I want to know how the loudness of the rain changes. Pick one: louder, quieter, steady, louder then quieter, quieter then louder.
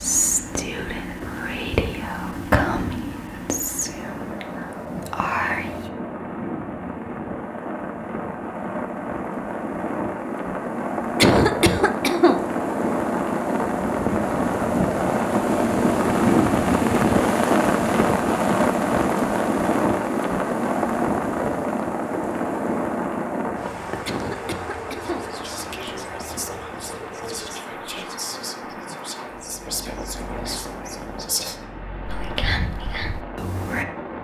louder then quieter.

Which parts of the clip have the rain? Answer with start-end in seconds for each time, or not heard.
0.0-34.1.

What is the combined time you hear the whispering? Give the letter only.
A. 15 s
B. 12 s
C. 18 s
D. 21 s
A.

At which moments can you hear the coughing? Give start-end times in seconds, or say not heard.
11.2-12.4, 24.1-25.2.